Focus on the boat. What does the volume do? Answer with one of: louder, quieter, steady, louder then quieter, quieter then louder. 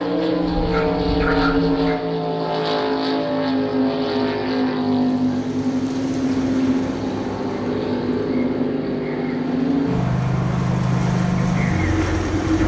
steady.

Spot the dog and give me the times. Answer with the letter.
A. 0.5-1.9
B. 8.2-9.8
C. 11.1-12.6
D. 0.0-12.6
A.